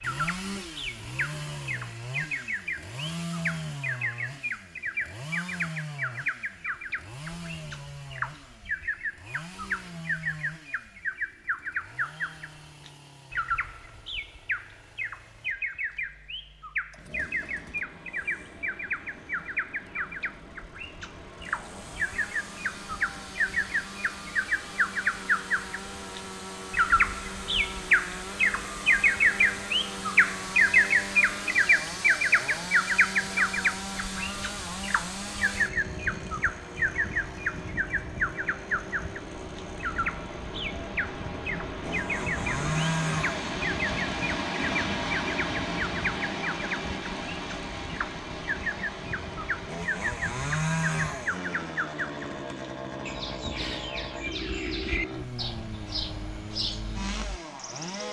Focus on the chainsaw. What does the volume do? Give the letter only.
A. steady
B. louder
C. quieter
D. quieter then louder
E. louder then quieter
D.